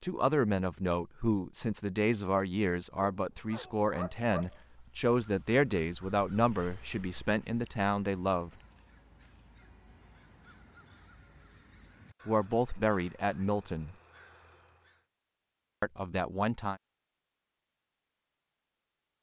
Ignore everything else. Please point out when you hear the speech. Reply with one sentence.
You can hear the speech from 0.0 to 8.5 s, from 12.2 to 13.9 s and from 15.8 to 16.8 s.